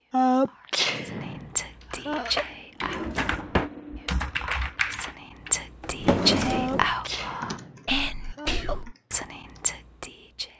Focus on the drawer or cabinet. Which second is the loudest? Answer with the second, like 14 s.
6 s.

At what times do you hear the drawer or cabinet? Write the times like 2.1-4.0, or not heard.
2.8-3.7, 5.8-6.9.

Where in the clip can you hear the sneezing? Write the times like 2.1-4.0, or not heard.
0.1-2.5, 6.5-8.8.